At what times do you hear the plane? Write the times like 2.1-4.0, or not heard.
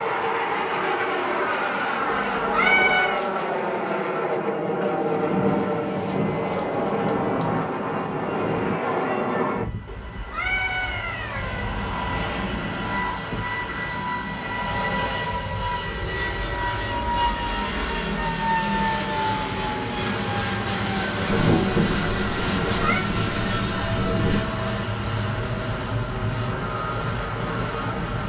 0.0-28.2.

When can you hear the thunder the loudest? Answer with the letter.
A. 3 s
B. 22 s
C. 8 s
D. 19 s
B.